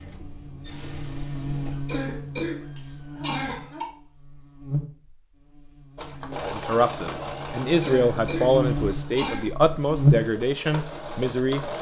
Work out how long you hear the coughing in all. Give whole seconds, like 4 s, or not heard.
4 s.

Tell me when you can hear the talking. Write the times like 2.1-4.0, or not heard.
6.2-11.7.